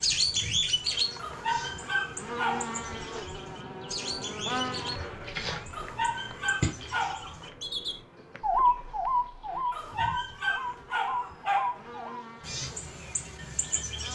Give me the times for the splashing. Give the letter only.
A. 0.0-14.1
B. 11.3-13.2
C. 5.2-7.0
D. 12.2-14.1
C.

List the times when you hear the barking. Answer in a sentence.
You can hear the barking from 1.1 to 2.8 s, from 5.7 to 7.3 s and from 9.7 to 12.1 s.